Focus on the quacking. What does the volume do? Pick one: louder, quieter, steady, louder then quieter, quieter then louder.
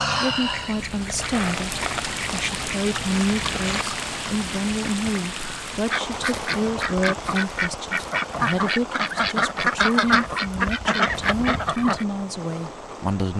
louder.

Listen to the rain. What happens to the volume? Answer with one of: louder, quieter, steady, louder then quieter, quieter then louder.
quieter.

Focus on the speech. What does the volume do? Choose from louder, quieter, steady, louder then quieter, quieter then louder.
steady.